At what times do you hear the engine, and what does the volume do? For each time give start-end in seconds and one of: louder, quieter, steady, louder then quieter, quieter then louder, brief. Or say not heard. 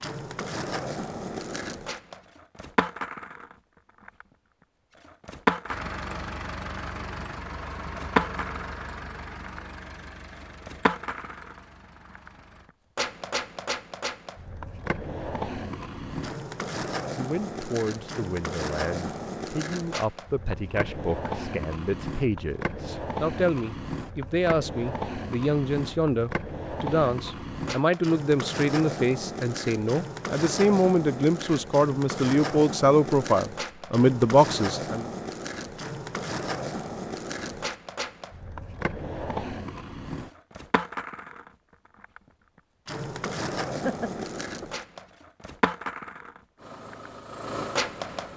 5.7-12.7 quieter
46.5-48.3 brief.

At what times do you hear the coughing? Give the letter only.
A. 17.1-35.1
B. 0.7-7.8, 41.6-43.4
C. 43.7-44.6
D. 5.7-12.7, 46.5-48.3
C.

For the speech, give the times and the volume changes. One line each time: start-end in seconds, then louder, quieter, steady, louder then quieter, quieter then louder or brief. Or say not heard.
17.1-35.1 louder.